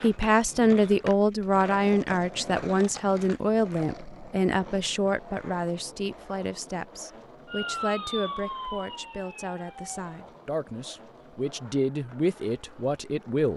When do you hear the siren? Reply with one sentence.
You can hear the siren from 7.5 to 10.1 s.